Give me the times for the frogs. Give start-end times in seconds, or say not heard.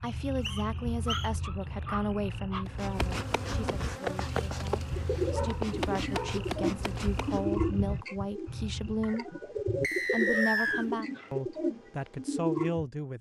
0.0-9.2.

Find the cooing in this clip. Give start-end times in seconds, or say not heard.
4.9-12.8.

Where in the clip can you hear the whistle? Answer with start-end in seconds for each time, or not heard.
0.1-1.3, 9.8-10.8.